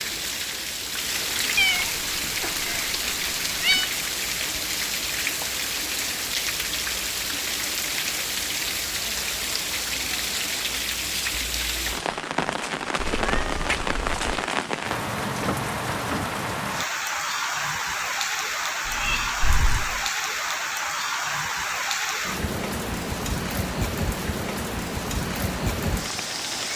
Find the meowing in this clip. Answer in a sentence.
You can hear the meowing from 1.6 to 3.9 s, from 12.9 to 14.4 s and from 18.9 to 20.1 s.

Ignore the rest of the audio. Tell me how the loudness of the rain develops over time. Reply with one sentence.
The loudness of the rain stays about the same.